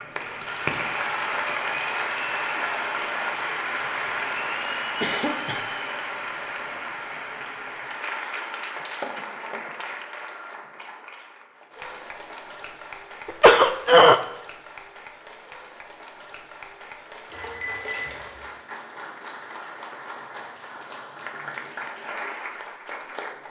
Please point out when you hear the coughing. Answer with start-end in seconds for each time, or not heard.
5.0-5.7, 13.2-14.2.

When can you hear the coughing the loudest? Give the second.
14 s.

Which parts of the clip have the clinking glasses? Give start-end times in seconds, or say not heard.
17.3-18.4.